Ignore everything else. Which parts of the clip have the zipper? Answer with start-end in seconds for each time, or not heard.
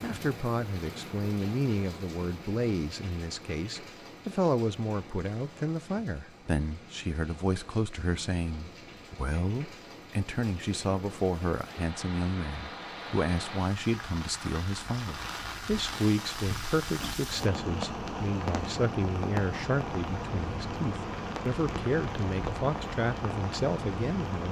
not heard.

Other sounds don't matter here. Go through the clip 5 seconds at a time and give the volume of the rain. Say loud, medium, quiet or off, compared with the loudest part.
medium, quiet, medium, loud, loud.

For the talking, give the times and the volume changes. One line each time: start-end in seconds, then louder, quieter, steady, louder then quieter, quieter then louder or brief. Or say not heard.
0.0-24.4 steady.